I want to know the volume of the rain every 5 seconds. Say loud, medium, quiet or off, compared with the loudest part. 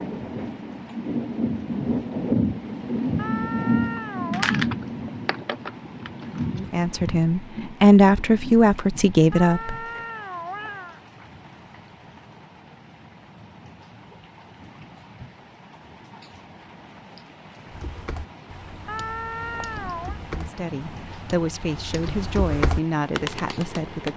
loud, medium, quiet, quiet, quiet.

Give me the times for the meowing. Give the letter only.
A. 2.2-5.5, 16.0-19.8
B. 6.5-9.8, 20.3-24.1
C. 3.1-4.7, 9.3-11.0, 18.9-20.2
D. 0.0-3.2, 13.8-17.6
C.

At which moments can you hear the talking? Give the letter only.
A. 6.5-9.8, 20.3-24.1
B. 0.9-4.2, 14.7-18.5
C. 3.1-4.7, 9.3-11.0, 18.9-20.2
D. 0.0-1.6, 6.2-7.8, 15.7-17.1
A.